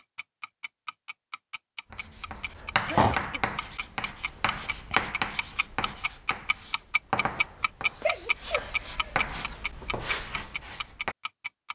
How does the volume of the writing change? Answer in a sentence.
The volume of the writing goes down, then up.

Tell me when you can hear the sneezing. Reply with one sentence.
The sneezing can be heard from 1.9 to 3.5 s and from 7.2 to 9.2 s.